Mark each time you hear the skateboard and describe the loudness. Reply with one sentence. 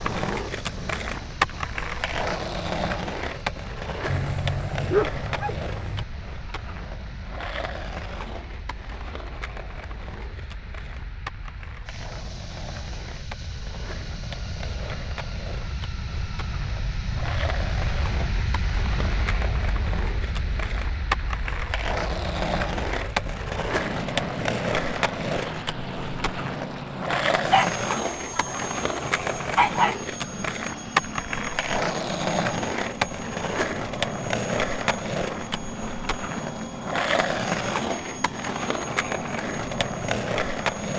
The skateboard can be heard from 0.0 to 40.9 s, getting quieter then louder.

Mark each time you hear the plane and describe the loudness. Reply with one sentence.
The plane can be heard from 0.0 to 40.9 s, getting louder.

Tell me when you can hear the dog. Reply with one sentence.
You can hear the dog from 4.0 to 6.0 s and from 27.4 to 29.9 s.